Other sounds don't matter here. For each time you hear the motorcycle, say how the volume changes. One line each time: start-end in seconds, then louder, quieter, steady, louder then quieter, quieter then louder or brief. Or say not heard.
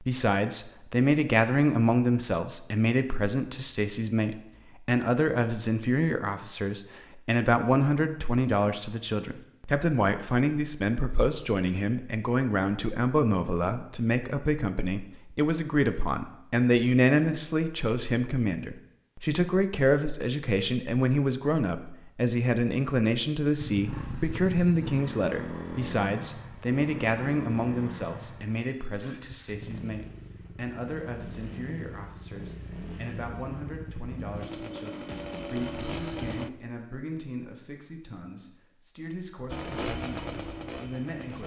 23.6-36.5 quieter then louder
39.5-41.4 brief.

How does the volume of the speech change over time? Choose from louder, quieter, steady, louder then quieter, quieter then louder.
quieter.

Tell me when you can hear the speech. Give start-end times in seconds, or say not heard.
0.0-41.4.